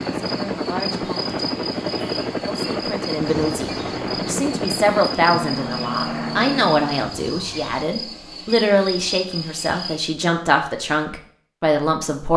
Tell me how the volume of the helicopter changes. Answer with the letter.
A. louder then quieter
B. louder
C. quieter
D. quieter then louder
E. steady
E.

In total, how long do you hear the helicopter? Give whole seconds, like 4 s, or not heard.
7 s.